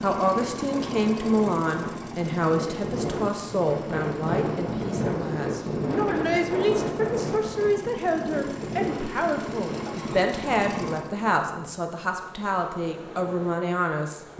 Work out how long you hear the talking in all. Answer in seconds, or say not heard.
14 s.